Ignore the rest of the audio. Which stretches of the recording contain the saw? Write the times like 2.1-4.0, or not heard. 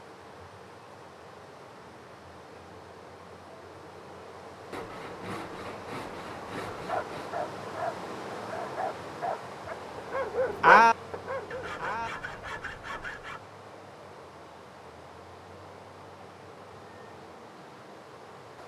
4.7-7.3, 11.4-13.4.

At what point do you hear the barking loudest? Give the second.
11 s.